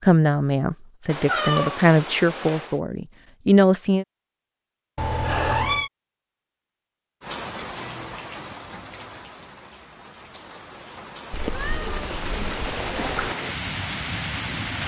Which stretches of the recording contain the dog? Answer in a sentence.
You can't hear the dog here.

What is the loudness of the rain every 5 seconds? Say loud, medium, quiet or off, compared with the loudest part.
off, medium, loud.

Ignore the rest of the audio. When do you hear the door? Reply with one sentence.
You can't hear the door here.